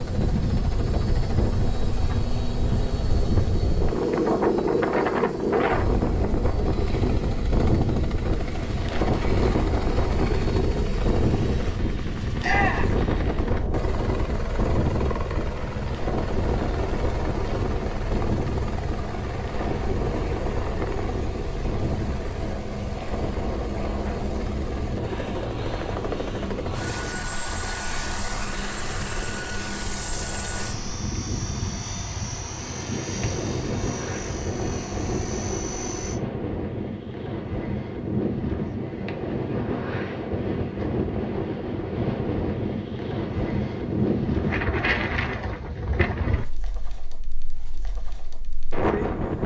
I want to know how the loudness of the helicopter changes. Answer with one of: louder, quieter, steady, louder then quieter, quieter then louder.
steady.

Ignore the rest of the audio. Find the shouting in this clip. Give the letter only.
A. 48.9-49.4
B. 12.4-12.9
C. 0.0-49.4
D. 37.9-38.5
B.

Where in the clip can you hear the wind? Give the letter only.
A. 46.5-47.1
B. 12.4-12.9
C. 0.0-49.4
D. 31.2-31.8
C.